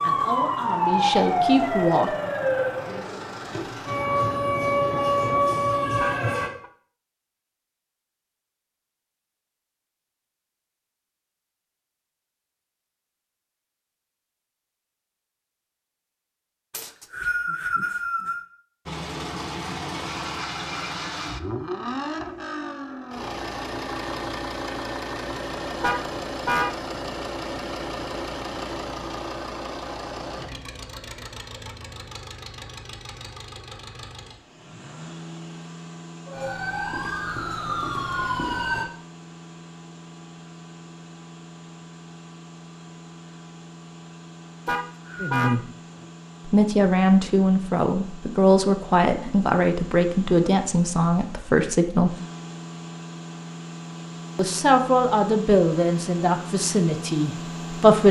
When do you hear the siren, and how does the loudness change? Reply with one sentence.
The siren can be heard from 0.0 to 6.5 s, getting quieter then louder; and briefly from 36.2 to 38.9 s.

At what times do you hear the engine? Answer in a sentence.
You can hear the engine from 18.9 to 58.0 s.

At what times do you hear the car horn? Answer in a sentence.
You can hear the car horn from 6.0 to 6.7 s, from 25.8 to 26.8 s and from 44.6 to 46.0 s.